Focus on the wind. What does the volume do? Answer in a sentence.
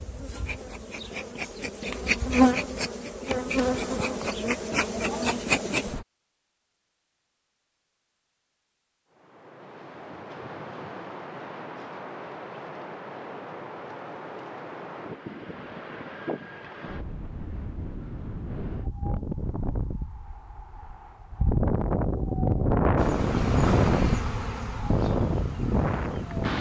The loudness of the wind goes up.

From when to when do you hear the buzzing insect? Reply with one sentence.
You can hear the buzzing insect from 0.0 to 6.0 s and from 22.9 to 26.5 s.